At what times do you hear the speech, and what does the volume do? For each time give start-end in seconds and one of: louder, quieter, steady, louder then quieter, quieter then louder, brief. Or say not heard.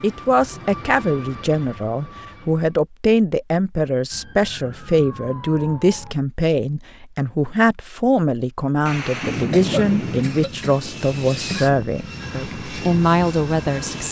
0.0-14.0 steady.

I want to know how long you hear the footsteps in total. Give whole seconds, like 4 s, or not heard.
not heard.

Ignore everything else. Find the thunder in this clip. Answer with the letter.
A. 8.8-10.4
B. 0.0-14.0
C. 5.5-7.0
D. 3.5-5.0
A.